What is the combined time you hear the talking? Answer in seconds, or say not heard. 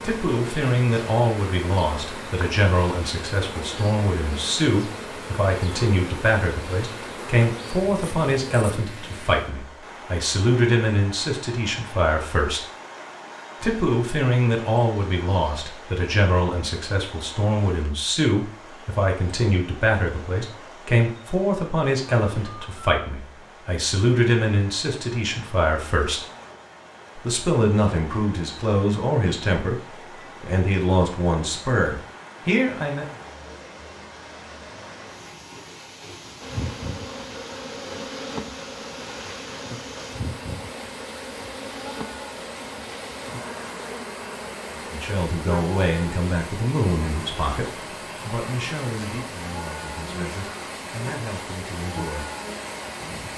38 s.